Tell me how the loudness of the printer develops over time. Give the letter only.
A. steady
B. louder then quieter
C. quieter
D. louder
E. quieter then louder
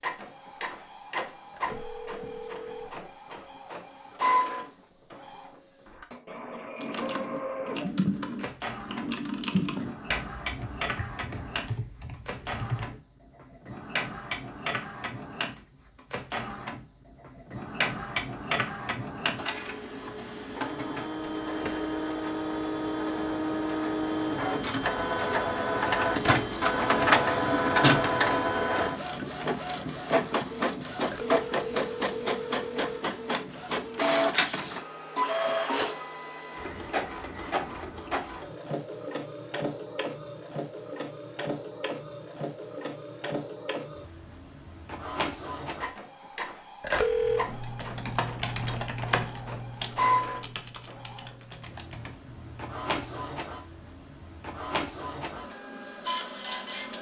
B.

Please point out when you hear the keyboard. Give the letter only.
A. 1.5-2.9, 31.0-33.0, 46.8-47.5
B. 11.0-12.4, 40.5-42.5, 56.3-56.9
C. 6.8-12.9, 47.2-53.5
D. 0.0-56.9
C.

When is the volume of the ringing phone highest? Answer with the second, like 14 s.
47 s.